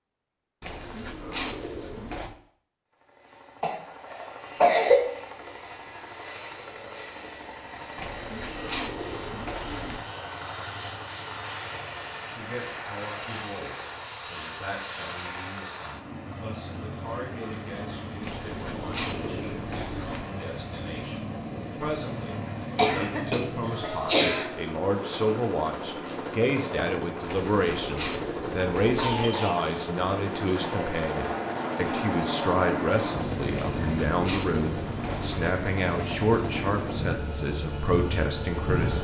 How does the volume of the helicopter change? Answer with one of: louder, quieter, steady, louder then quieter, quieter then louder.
louder.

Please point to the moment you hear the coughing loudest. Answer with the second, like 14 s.
5 s.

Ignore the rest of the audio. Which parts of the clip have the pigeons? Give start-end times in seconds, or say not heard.
0.6-2.4, 8.0-10.0, 18.2-20.2, 27.2-29.1, 33.5-35.5.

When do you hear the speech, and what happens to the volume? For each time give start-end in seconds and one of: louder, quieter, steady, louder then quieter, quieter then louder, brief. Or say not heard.
12.2-39.0 louder.